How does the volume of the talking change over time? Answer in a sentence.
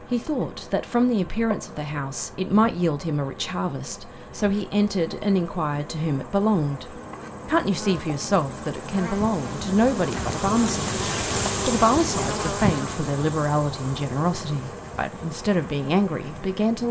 The loudness of the talking stays about the same.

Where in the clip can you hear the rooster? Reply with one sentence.
The rooster can't be heard in this clip.